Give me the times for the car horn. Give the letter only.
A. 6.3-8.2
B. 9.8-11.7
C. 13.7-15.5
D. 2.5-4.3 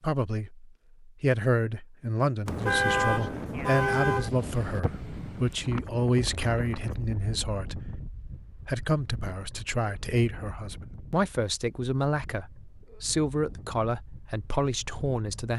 D.